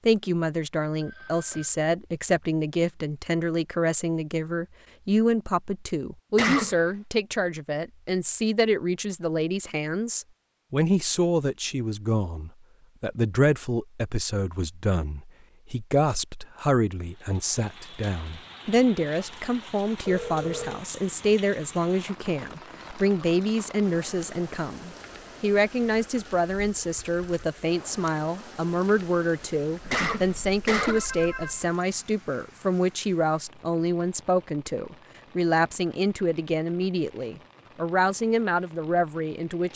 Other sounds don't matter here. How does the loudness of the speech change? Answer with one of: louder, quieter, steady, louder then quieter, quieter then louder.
steady.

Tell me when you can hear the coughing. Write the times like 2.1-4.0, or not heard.
6.3-6.8, 29.9-31.1.